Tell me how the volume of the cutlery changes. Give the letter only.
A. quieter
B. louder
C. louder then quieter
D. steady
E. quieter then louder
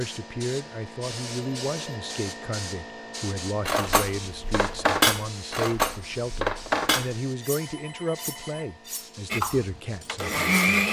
A.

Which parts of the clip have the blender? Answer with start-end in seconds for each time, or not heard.
9.3-10.8.